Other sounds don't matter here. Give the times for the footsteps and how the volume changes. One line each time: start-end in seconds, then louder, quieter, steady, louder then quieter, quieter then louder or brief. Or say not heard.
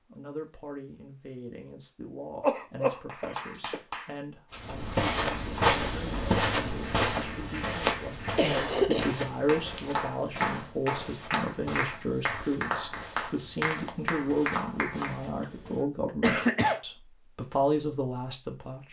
4.5-15.8 quieter.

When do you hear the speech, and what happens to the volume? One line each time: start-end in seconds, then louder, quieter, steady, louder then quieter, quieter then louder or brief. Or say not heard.
0.1-18.8 louder.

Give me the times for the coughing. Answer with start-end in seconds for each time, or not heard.
2.4-3.8, 8.3-9.1, 15.4-16.8.